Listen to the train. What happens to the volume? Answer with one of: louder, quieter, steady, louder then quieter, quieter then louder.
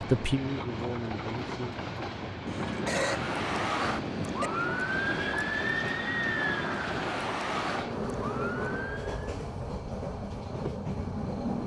steady.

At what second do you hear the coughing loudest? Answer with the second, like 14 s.
3 s.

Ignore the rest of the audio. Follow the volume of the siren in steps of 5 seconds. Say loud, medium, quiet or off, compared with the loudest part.
loud, loud, off.